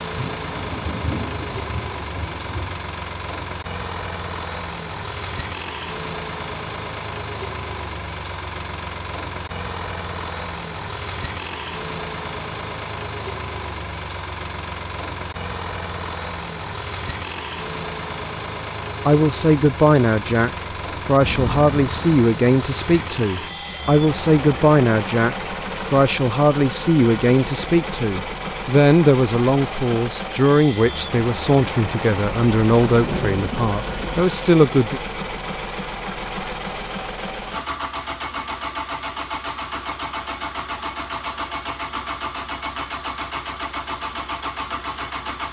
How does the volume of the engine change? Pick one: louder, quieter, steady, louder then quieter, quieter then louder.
steady.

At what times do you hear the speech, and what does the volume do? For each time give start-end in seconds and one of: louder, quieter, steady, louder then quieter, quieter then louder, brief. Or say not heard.
19.1-35.0 steady.